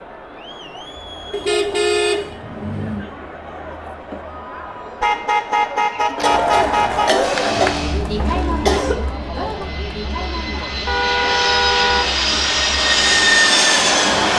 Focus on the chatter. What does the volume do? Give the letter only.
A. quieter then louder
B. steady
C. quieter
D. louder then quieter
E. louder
D.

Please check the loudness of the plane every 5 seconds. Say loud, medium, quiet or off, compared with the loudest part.
off, quiet, loud.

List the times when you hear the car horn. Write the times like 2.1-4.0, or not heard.
1.3-3.0, 5.0-7.2, 10.8-12.2.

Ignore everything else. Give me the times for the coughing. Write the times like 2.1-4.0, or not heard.
6.2-8.9.